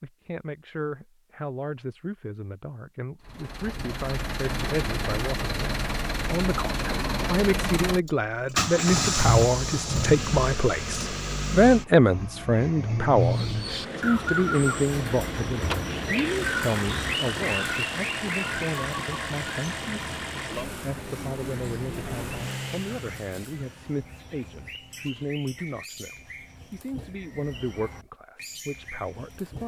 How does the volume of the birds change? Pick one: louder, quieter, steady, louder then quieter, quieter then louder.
quieter.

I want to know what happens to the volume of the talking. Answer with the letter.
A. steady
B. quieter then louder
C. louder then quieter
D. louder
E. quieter
C.